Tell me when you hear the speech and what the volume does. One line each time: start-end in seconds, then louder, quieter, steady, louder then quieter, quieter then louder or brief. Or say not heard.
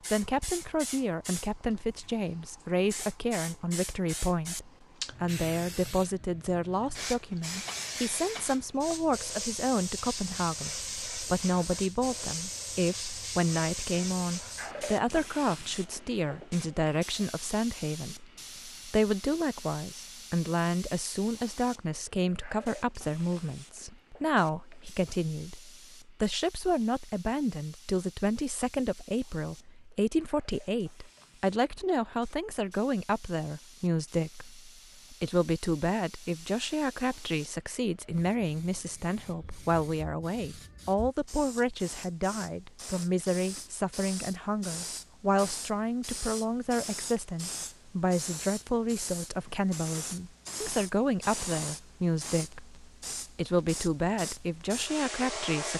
0.1-55.7 steady.